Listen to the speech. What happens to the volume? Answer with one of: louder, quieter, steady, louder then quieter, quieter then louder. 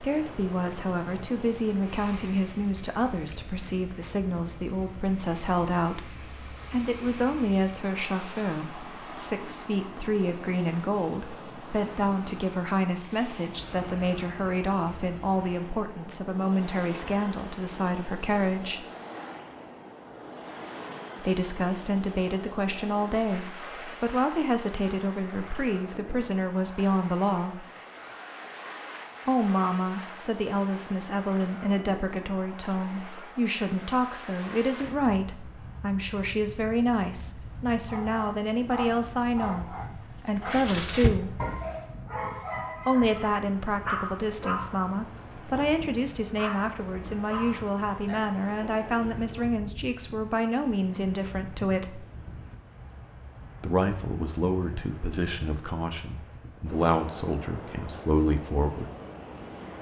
steady.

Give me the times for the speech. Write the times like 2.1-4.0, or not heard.
0.0-18.9, 21.2-27.6, 29.2-41.4, 42.9-52.0, 53.6-58.9.